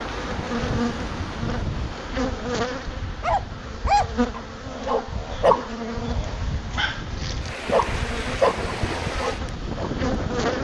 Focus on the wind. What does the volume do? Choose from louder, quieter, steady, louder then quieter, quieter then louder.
quieter then louder.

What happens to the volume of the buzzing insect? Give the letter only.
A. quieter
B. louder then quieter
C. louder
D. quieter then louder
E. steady
E.